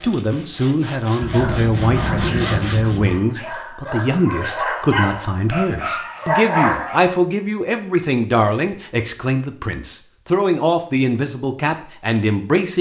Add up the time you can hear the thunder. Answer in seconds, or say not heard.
2 s.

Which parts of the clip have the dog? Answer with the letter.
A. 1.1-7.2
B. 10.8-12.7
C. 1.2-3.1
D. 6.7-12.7
A.